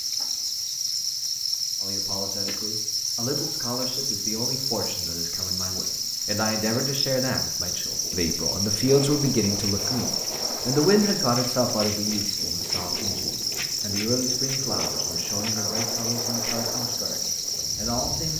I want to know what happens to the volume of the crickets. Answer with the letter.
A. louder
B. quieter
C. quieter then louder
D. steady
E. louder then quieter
D.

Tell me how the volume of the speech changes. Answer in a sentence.
The volume of the speech goes up, then down.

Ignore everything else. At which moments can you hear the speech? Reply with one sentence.
The speech can be heard from 1.8 to 18.3 s.